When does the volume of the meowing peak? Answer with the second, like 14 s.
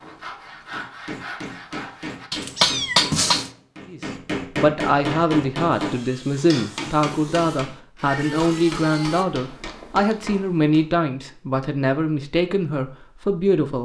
3 s.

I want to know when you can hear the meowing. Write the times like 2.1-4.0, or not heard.
2.3-3.5, 8.1-10.2.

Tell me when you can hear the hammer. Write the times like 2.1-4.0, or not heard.
0.7-10.8.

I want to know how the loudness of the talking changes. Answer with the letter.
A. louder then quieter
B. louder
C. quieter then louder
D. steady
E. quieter
D.